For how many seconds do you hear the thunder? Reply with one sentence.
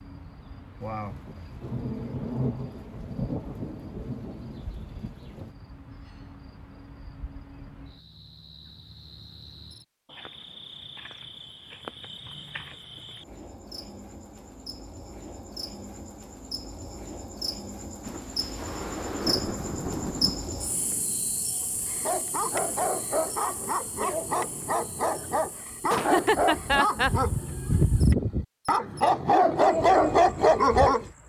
You can hear the thunder for 7 seconds altogether.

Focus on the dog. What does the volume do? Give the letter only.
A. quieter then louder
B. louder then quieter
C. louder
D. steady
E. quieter
C.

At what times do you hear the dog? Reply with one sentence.
You can hear the dog from 21.6 to 31.1 s.